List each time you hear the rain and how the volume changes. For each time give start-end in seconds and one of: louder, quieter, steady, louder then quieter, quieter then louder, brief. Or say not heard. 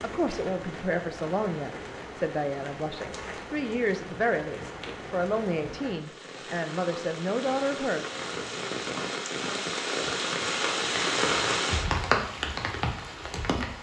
0.0-13.7 louder.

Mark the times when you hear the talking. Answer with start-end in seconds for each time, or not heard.
0.0-8.1.